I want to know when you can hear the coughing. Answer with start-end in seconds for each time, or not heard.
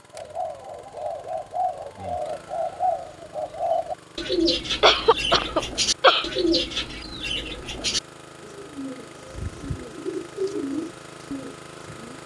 4.8-6.3.